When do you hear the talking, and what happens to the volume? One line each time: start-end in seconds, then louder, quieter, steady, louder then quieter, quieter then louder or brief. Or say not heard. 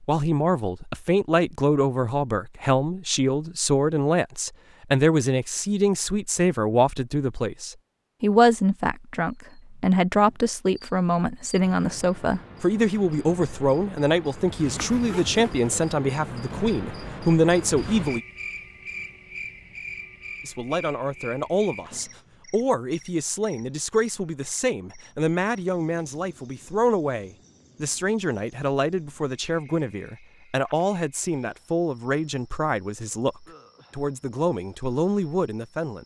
0.0-18.2 steady
20.4-36.0 steady.